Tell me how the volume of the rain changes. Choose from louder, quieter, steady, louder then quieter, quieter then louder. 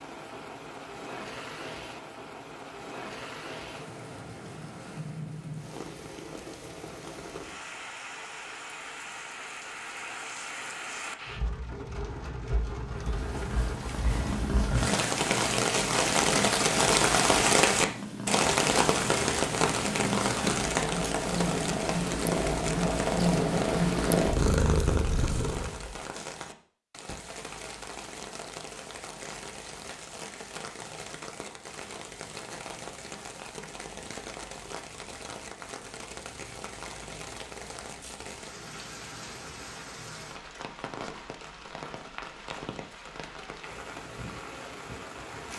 louder then quieter.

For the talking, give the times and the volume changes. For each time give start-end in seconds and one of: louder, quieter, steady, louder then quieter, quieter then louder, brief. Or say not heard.
not heard.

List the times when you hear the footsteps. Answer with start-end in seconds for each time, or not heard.
not heard.